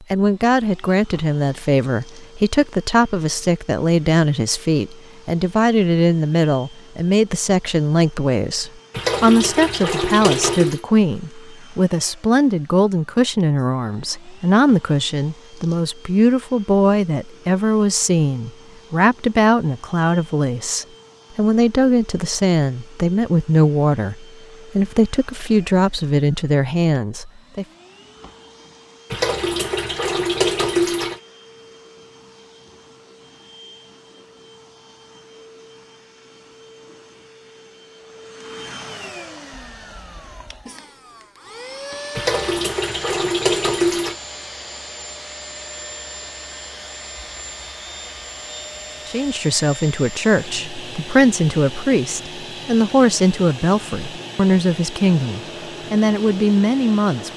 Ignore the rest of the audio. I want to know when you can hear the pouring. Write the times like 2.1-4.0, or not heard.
8.9-10.8, 29.1-31.2, 42.1-44.1.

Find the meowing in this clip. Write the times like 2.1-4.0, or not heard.
39.5-40.7.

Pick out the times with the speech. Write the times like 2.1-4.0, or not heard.
0.1-27.6, 49.0-57.3.